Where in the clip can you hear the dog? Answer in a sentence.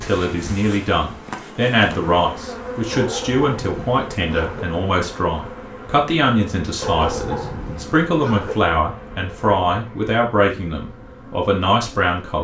You can hear the dog from 2.9 to 4.7 s and from 6.8 to 8.6 s.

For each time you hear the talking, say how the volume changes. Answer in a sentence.
You can hear the talking from 0.0 to 12.3 s, at a steady volume.